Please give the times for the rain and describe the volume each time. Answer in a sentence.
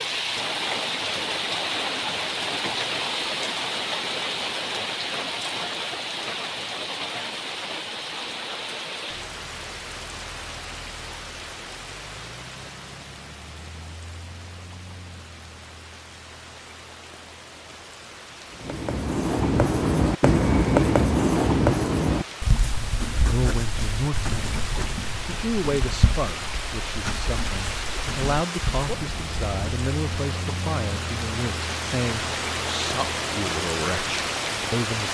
You can hear the rain from 0.0 to 35.1 s, getting quieter then louder.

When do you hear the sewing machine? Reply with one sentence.
You can't hear the sewing machine here.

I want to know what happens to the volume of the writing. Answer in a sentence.
The volume of the writing goes down.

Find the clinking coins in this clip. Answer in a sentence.
You can't hear the clinking coins here.